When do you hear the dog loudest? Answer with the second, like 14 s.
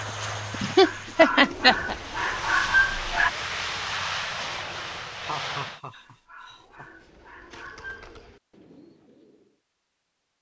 3 s.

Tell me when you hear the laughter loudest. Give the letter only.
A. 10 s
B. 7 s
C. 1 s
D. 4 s
C.